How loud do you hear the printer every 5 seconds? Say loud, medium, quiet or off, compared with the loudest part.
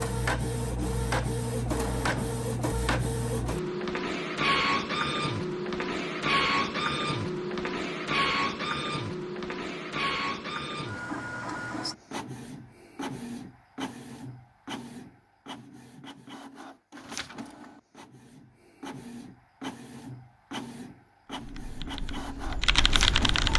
loud, loud, medium, quiet, medium.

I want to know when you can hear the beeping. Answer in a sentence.
The beeping can be heard from 1.8 to 2.4 s.